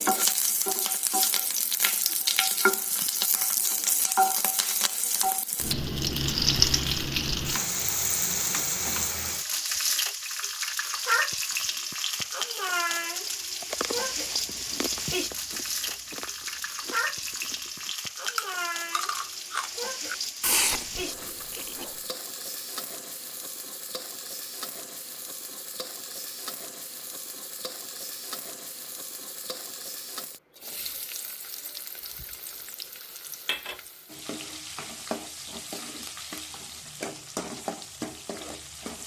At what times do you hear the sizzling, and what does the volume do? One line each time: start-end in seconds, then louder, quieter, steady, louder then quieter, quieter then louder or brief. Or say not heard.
0.0-39.0 quieter.